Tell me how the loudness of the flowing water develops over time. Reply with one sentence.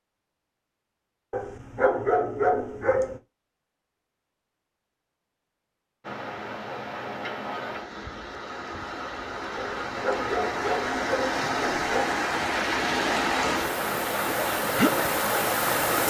The volume of the flowing water goes up.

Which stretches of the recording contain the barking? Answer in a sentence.
The barking can be heard from 1.3 to 3.2 s and from 9.6 to 12.2 s.